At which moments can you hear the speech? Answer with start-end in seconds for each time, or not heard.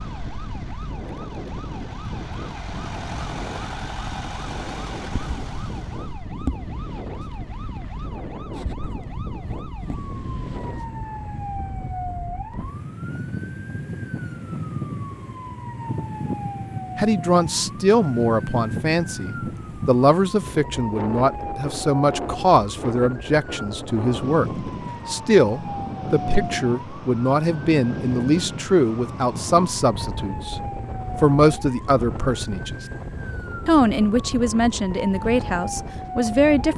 16.9-30.6, 31.2-32.8, 33.6-36.7.